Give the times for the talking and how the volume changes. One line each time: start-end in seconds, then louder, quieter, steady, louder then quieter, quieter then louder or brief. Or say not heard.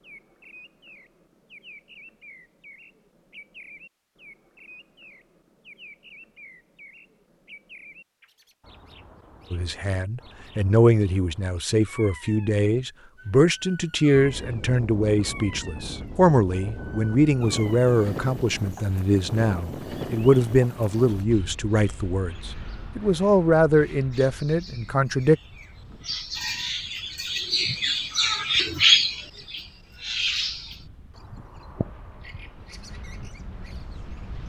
9.5-25.4 steady.